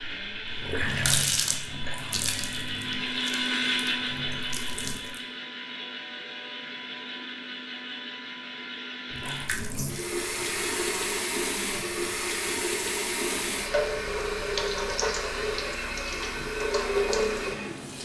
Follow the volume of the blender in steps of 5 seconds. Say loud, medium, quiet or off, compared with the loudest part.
loud, medium, medium, medium.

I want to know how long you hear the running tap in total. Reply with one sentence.
You can hear the running tap for 14 seconds altogether.